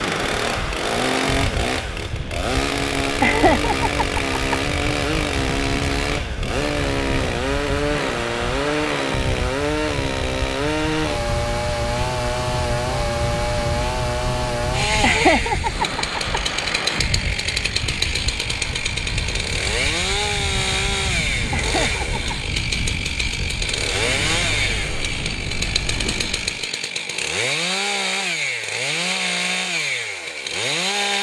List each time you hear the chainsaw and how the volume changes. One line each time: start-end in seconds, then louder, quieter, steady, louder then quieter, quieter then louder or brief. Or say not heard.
0.0-31.1 steady.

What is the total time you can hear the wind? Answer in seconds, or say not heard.
27 s.